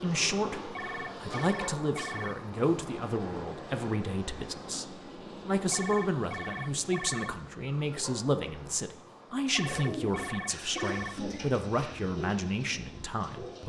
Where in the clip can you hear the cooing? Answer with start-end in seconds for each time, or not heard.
9.6-13.6.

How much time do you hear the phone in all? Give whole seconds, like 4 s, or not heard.
5 s.